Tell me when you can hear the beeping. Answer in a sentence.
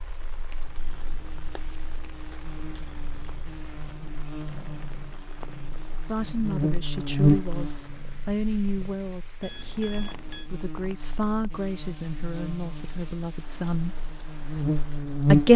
You can hear the beeping from 9.4 to 10.5 s.